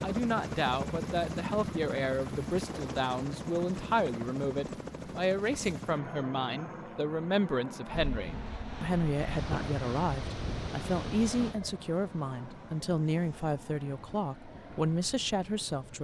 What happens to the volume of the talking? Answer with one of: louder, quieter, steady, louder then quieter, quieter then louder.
steady.